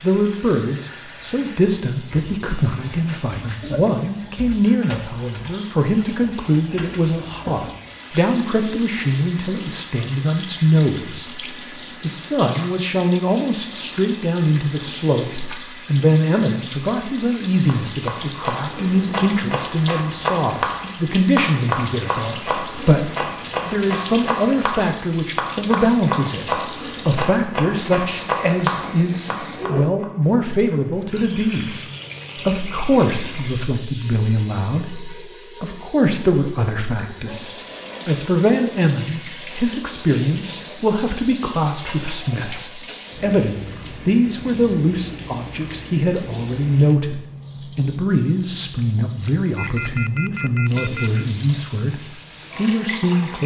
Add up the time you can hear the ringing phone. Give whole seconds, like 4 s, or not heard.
2 s.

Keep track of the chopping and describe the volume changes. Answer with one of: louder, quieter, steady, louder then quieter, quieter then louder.
steady.